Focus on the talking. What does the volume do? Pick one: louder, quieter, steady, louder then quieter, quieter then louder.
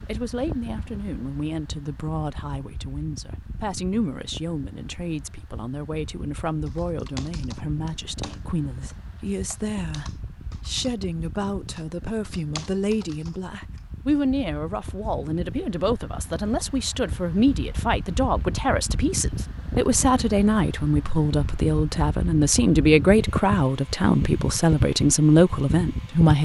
louder.